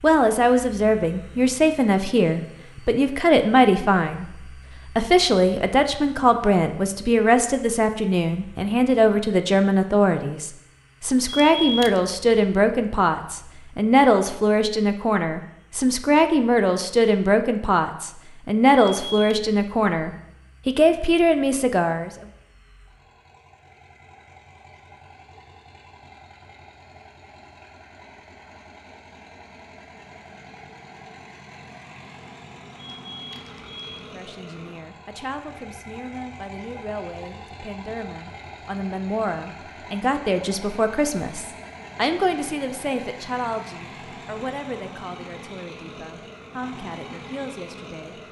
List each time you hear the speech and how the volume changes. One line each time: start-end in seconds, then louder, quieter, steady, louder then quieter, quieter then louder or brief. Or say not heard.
0.0-22.1 steady
34.0-48.2 louder then quieter.